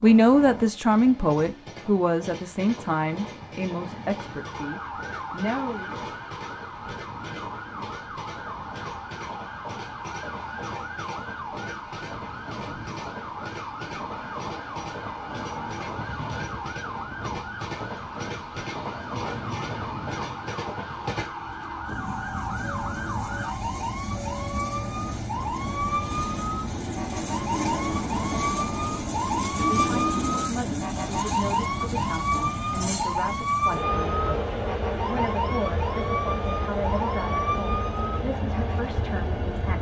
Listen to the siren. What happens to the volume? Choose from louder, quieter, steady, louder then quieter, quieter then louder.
louder.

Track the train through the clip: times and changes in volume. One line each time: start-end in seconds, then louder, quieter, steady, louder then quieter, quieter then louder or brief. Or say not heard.
0.0-39.7 louder.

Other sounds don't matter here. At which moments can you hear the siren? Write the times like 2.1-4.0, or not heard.
4.1-39.7.